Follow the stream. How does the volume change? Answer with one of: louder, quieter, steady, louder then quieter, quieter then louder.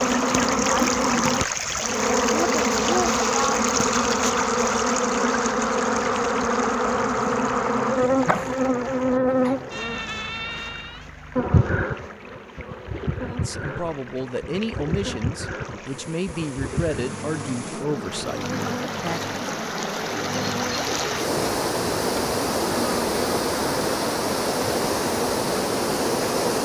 quieter then louder.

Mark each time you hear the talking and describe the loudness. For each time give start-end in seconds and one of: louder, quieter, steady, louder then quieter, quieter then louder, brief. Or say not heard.
13.2-19.4 steady.